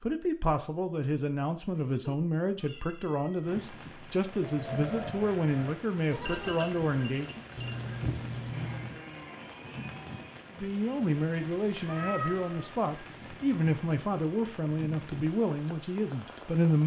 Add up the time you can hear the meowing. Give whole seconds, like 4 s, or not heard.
4 s.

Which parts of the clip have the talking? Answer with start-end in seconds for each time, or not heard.
0.0-7.4, 10.6-16.8.